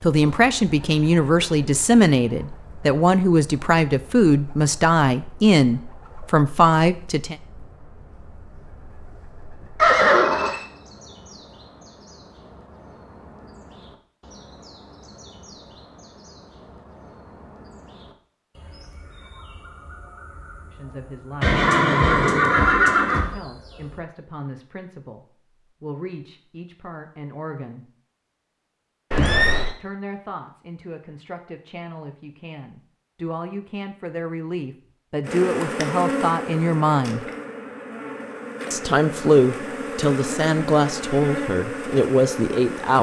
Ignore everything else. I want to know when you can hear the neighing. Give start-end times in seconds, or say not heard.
9.8-10.7, 21.4-23.4, 29.1-29.8.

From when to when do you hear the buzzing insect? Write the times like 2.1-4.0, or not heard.
35.2-42.9.